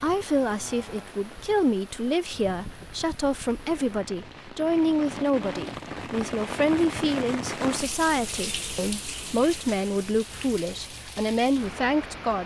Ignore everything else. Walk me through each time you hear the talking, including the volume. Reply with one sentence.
You can hear the talking from 0.0 to 12.4 s, at a steady volume.